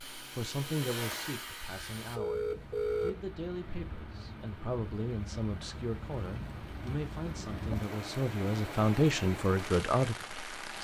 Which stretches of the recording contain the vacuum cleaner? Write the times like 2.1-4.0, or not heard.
0.0-2.2.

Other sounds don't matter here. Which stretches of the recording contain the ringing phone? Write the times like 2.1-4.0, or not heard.
2.1-3.1.